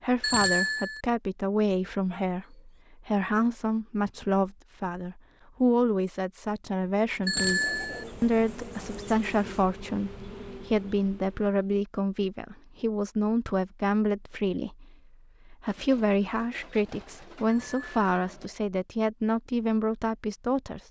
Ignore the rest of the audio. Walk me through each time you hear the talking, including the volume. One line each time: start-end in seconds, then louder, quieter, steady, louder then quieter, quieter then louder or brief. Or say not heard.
0.0-20.8 steady.